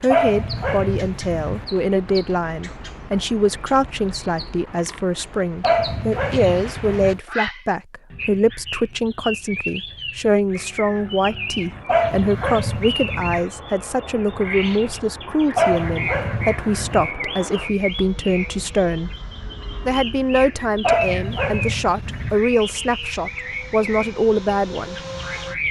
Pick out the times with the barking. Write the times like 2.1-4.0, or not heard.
0.1-1.6, 5.6-7.2, 11.8-13.4, 15.6-17.1, 20.8-22.4.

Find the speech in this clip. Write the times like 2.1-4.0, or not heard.
0.0-19.1, 19.9-25.0.